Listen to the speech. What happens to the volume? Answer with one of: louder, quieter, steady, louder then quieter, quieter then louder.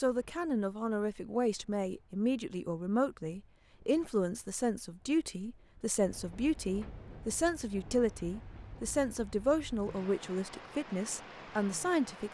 steady.